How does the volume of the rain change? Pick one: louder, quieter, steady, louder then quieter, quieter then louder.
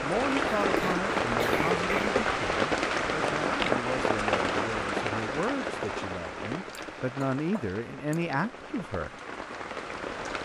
quieter.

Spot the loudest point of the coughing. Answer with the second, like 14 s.
2 s.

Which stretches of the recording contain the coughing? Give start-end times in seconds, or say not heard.
0.6-2.1, 6.8-8.2.